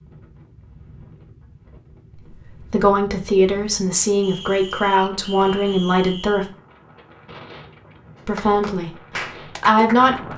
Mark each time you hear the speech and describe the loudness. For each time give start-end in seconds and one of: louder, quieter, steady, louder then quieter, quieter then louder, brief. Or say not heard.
2.2-6.5 steady
8.2-10.3 brief.